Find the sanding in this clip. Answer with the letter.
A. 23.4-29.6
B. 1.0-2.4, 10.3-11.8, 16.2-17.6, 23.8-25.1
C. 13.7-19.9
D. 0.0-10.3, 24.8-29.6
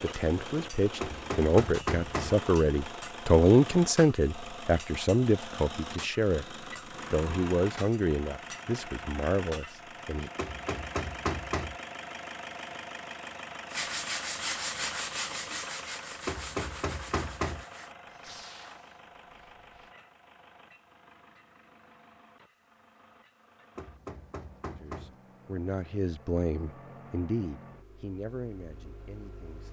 C.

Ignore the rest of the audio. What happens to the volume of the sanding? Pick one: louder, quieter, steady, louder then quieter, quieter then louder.
quieter.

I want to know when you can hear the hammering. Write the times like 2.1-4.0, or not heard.
1.0-2.4, 10.3-11.8, 16.2-17.6, 23.8-25.1.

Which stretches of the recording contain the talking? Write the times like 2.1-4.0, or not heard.
0.0-10.3, 24.8-29.6.